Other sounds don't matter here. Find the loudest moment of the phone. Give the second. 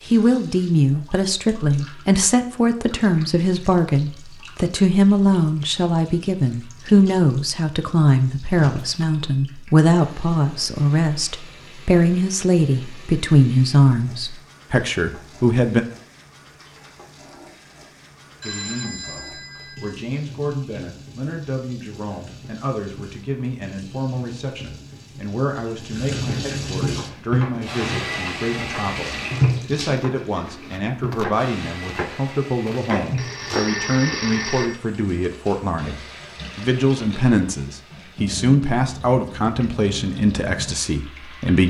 34 s.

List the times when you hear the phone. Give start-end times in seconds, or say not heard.
8.8-9.2, 18.4-20.1, 33.1-34.8.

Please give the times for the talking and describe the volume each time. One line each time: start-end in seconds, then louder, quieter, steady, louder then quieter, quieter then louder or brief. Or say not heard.
0.1-15.8 steady
18.4-41.6 louder.